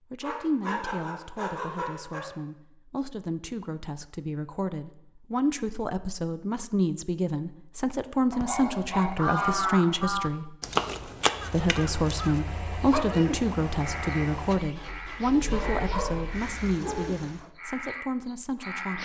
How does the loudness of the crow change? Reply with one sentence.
The loudness of the crow goes down.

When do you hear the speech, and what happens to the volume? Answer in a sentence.
The speech can be heard from 0.1 to 10.6 s, getting louder; and from 11.5 to 19.0 s, getting quieter.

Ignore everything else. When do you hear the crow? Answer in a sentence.
The crow can be heard from 8.4 to 19.0 s.